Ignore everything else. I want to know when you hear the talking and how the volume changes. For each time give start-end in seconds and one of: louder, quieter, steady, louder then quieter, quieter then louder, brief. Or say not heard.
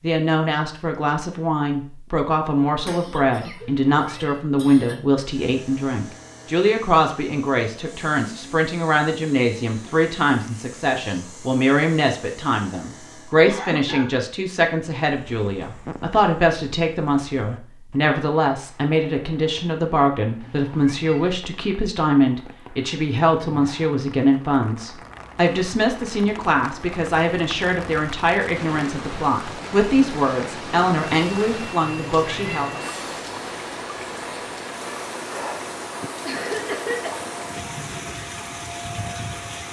0.0-32.9 steady.